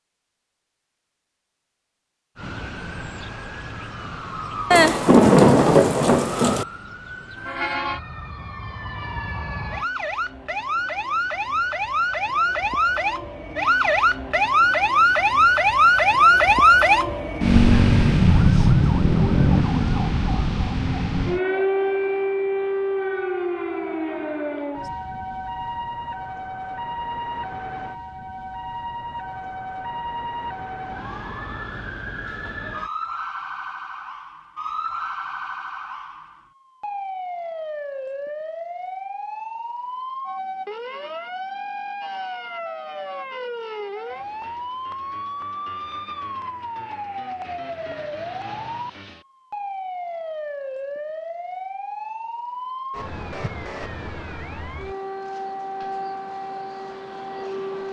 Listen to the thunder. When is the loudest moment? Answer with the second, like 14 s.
5 s.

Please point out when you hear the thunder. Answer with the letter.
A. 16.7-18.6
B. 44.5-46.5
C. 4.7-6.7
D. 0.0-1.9
C.